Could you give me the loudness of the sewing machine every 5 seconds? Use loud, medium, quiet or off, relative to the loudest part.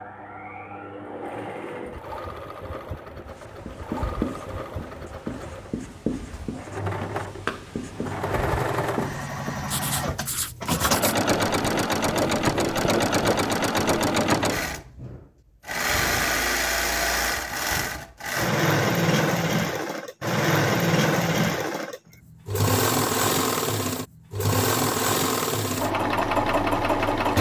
quiet, medium, loud, loud, loud, loud.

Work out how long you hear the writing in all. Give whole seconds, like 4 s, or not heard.
11 s.